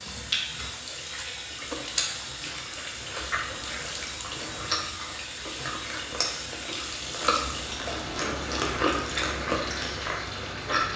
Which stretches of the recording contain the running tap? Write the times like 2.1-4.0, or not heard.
0.0-10.9.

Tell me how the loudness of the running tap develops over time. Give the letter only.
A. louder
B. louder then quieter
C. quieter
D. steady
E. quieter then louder
D.